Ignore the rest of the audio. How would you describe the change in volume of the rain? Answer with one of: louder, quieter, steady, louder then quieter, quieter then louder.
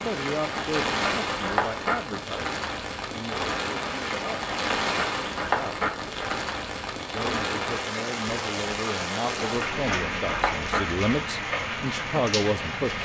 steady.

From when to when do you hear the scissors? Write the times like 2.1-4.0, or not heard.
0.5-2.0, 4.5-6.5, 9.4-11.0.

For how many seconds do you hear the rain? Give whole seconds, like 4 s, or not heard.
13 s.